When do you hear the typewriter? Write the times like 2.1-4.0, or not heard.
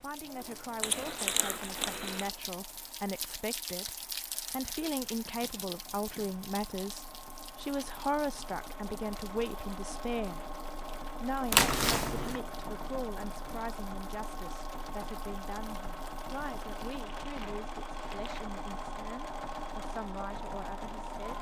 not heard.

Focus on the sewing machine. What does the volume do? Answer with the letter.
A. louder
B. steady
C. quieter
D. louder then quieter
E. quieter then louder
A.